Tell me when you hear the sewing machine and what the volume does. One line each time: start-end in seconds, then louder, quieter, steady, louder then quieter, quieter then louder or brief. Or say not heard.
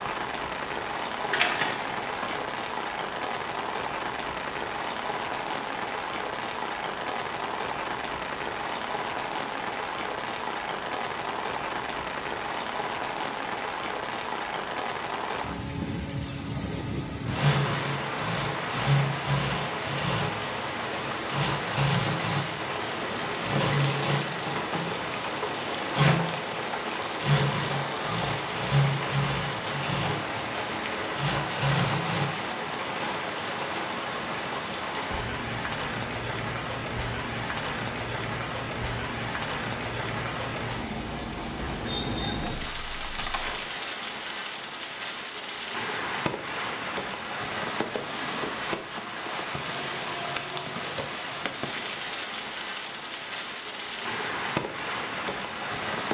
17.3-32.4 steady.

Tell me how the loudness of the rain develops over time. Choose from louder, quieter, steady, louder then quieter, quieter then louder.
steady.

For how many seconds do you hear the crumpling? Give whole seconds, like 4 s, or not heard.
4 s.